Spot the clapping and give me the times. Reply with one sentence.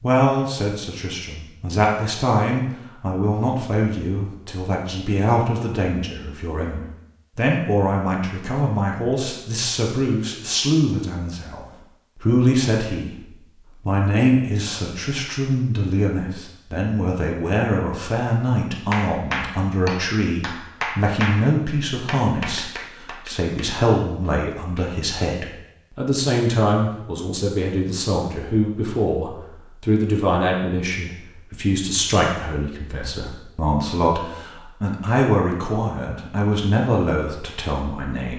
You can hear the clapping from 18.9 to 21.4 s and from 22.1 to 24.9 s.